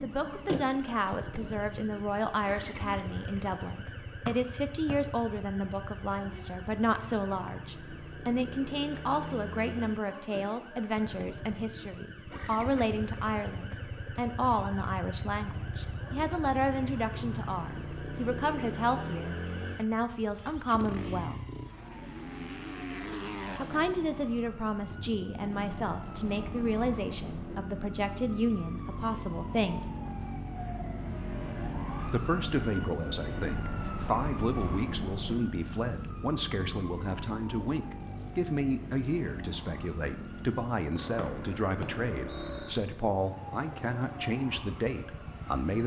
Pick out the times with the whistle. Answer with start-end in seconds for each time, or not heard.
4.2-5.0, 41.1-42.8.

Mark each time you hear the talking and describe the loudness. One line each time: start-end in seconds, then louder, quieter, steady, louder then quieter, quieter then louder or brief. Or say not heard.
0.0-21.4 steady
23.6-29.9 steady
32.0-45.8 steady.